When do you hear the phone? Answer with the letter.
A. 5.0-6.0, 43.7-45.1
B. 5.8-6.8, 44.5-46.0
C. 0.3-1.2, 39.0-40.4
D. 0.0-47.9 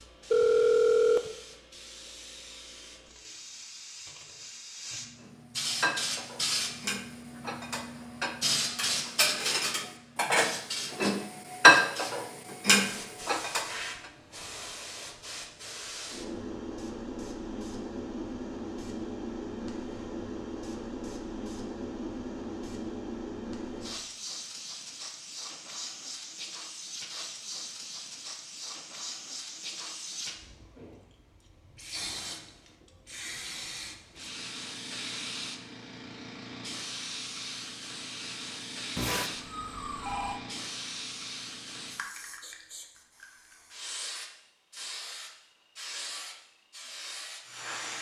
C.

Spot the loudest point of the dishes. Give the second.
12 s.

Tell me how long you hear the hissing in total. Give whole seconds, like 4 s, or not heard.
48 s.